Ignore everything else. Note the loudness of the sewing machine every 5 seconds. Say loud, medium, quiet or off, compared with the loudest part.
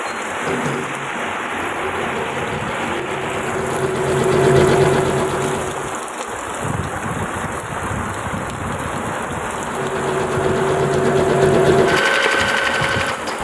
loud, medium, loud.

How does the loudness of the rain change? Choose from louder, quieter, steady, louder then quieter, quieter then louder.
steady.